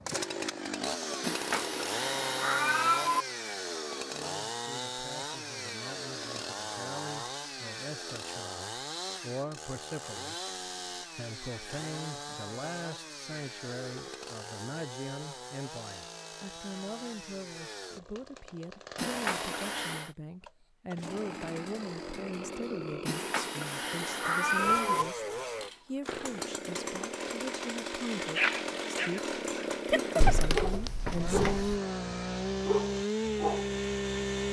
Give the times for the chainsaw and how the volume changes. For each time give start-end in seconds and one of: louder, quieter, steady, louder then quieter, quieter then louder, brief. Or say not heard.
0.0-34.4 quieter then louder.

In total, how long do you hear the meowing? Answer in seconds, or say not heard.
5 s.